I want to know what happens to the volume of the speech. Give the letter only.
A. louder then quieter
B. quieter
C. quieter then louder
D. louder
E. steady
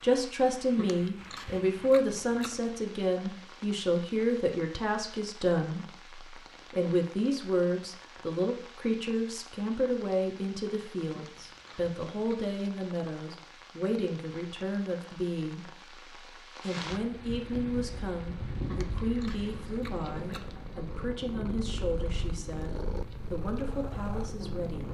B.